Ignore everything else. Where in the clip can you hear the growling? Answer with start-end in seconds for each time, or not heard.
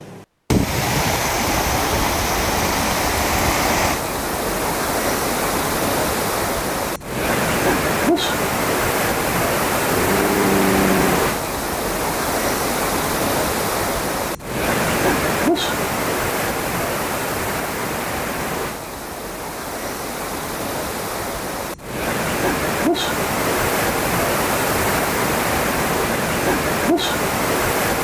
9.8-11.2.